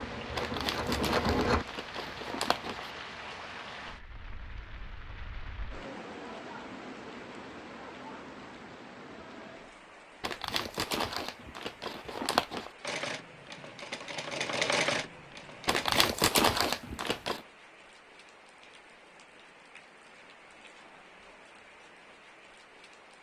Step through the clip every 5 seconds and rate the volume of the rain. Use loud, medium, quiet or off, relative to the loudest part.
loud, loud, medium, medium, medium.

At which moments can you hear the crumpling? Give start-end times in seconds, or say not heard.
0.3-2.9, 10.2-12.7, 15.7-17.4.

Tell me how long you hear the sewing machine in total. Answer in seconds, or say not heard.
5 s.